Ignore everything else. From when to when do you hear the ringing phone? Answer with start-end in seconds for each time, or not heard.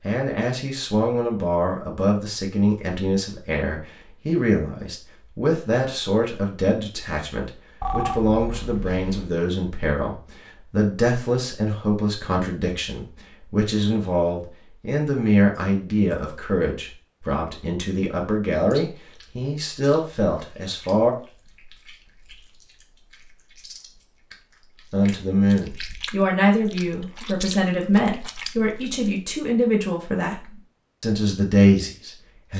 7.8-9.3.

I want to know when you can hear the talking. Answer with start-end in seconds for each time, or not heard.
0.0-21.1, 24.9-32.5.